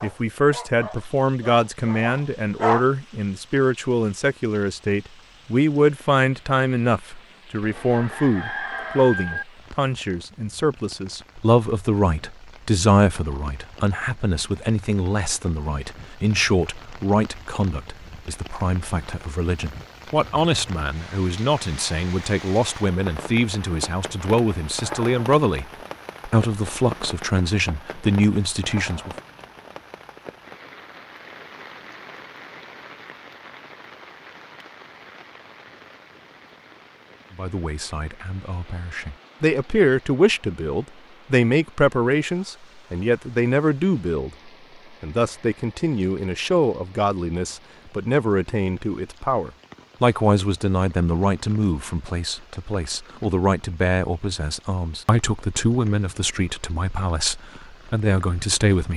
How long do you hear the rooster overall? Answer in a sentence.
The rooster can be heard for 2 seconds in total.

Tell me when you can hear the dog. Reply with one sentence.
You can hear the dog from 0.0 to 2.9 s.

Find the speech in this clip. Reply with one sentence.
The speech can be heard from 0.0 to 25.6 s, from 26.2 to 29.1 s, from 37.4 to 44.3 s and from 45.0 to 58.9 s.